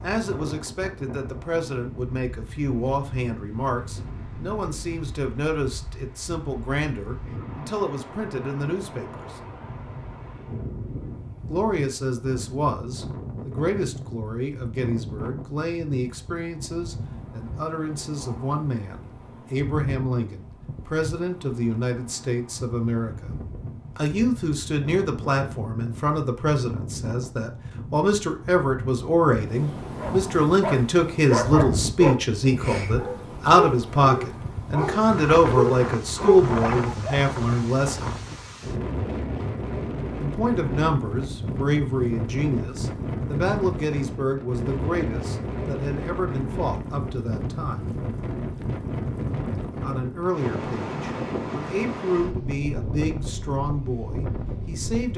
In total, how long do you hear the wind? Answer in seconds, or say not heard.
55 s.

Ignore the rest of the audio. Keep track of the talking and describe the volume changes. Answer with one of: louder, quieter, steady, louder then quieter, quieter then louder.
louder then quieter.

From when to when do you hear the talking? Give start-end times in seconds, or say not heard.
0.0-9.4, 11.4-23.4, 23.9-38.0, 40.1-48.0, 49.8-55.1.